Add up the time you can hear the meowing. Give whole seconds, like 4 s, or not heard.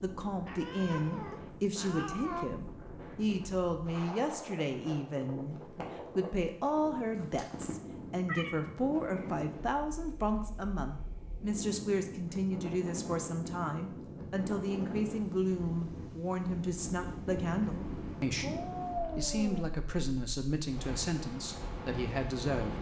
5 s.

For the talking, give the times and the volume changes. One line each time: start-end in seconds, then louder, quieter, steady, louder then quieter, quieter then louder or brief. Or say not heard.
0.0-22.7 steady.